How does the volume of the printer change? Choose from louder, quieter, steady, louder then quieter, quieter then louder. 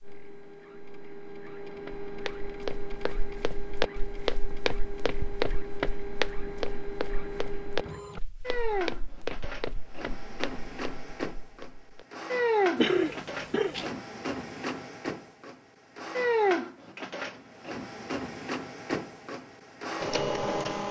louder.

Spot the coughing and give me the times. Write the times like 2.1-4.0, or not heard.
12.8-13.9.